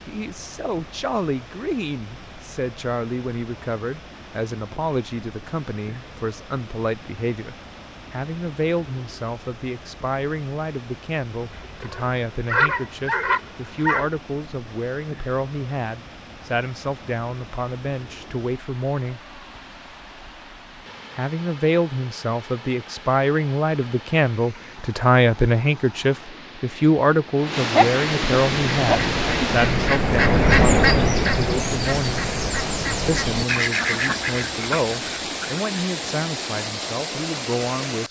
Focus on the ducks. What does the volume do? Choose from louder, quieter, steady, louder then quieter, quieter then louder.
louder then quieter.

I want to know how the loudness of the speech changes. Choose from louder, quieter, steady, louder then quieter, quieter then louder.
louder then quieter.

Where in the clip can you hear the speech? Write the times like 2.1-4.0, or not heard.
0.1-19.2, 21.1-32.2, 33.0-38.0.